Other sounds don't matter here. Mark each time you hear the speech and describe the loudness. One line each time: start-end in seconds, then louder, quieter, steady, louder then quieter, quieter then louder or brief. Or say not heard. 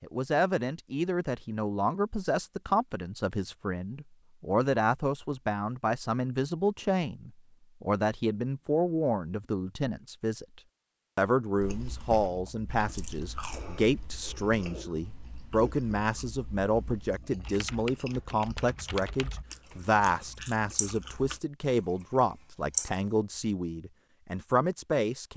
0.0-25.3 steady.